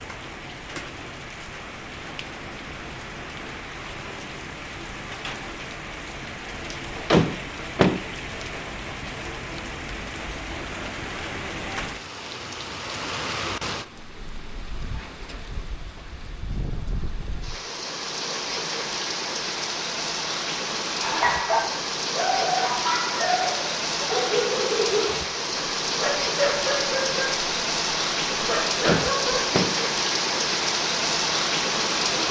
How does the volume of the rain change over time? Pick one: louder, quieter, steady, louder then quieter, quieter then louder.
louder.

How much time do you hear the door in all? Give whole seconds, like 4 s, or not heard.
2 s.